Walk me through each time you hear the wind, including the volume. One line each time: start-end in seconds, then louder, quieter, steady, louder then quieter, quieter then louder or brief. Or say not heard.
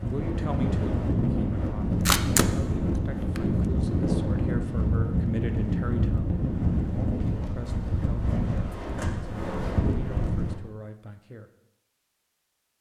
0.0-10.6 steady.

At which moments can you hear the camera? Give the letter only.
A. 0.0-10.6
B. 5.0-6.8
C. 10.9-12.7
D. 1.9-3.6
D.